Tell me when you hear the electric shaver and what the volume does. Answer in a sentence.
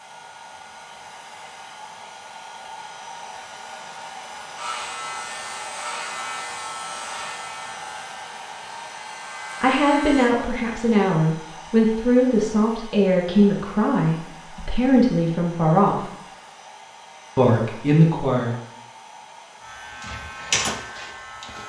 You can hear the electric shaver from 4.5 to 10.3 s, getting quieter then louder; and briefly from 19.6 to 21.6 s.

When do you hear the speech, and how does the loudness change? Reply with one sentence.
You can hear the speech from 9.6 to 16.0 s, at a steady volume; and briefly from 17.4 to 18.6 s.